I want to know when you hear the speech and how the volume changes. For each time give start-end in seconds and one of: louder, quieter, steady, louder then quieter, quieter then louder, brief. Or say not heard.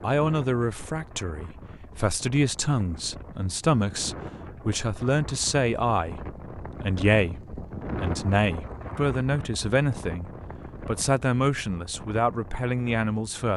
0.0-13.5 steady.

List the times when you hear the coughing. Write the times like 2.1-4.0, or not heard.
not heard.